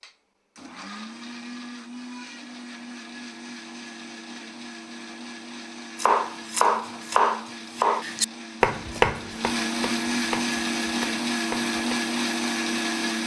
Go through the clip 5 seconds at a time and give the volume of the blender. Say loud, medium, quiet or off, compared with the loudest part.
quiet, medium, loud.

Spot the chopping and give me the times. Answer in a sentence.
The chopping can be heard from 6.0 to 12.0 s.